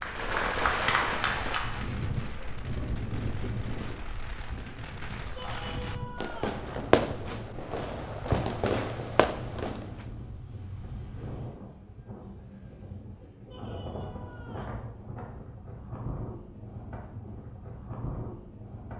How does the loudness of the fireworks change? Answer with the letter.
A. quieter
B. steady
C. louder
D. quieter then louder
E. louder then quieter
D.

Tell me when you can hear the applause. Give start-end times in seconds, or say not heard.
0.0-1.9.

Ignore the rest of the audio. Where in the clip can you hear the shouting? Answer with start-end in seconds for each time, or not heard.
5.3-6.7, 13.4-14.8.